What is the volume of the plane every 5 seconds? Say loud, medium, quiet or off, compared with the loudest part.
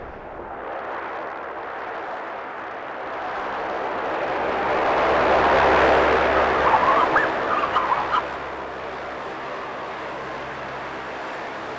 medium, loud, medium.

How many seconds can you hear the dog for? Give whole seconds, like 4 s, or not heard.
2 s.